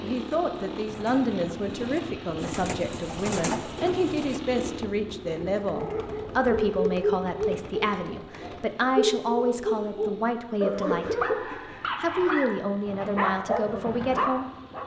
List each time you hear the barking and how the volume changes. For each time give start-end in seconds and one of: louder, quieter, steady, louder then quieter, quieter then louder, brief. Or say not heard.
5.7-14.8 steady.